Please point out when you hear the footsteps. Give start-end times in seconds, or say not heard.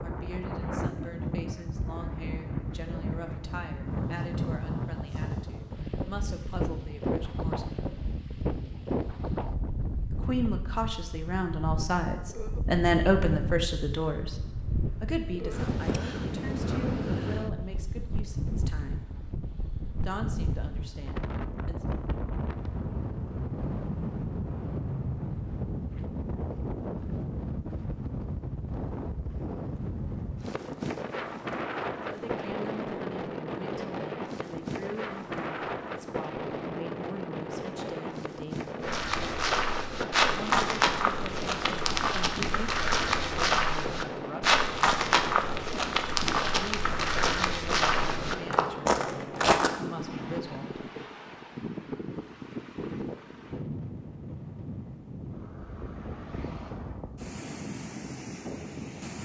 38.8-49.8.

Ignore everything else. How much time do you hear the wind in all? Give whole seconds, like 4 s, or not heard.
59 s.